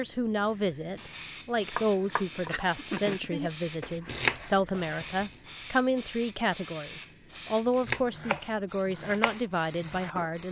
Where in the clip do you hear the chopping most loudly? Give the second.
4 s.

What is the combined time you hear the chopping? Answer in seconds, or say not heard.
6 s.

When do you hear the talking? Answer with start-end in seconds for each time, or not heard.
0.0-10.4.